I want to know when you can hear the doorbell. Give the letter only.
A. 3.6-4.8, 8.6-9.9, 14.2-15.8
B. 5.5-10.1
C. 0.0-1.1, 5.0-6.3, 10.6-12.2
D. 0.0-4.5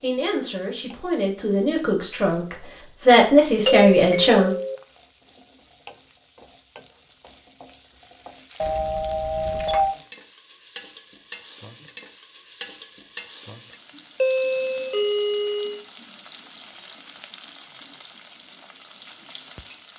A.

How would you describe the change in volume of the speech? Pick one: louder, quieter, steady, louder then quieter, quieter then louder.
louder.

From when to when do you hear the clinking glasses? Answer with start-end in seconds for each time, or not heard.
not heard.